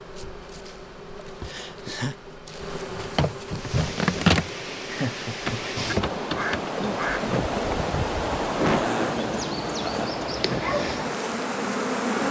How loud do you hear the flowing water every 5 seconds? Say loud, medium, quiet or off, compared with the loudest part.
medium, loud, loud.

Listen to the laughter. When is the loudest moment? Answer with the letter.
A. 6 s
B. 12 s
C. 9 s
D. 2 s
C.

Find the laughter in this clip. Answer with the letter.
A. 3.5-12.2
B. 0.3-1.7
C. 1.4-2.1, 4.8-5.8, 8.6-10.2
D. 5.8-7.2
C.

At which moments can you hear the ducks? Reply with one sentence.
You can hear the ducks from 5.8 to 7.2 s.